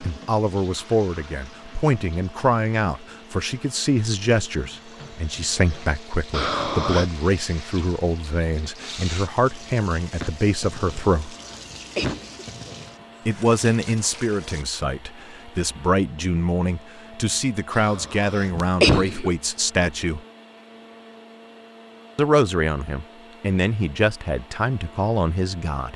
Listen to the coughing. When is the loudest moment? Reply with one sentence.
The volume of the coughing peaks at 19 seconds.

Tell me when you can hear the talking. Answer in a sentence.
You can hear the talking from 0.0 to 11.3 s, from 13.2 to 20.2 s and from 22.1 to 25.9 s.